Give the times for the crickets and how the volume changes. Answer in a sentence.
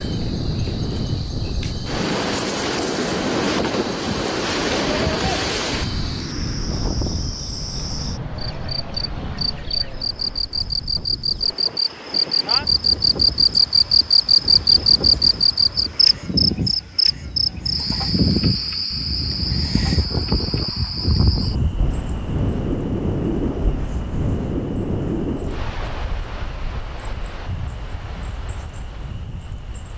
You can hear the crickets from 0.0 to 29.9 s, getting louder then quieter.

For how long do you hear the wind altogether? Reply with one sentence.
You can hear the wind for 30 seconds altogether.